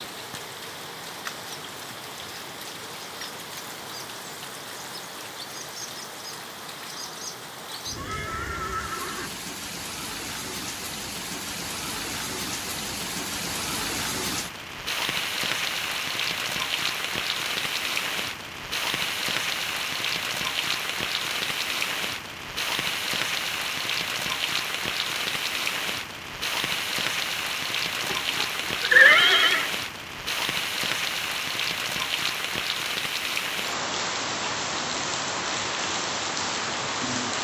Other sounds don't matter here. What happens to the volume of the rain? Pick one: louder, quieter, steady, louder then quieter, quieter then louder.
louder.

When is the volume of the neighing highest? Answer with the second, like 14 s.
29 s.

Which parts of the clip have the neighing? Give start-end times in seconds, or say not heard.
7.9-9.4, 28.0-29.7.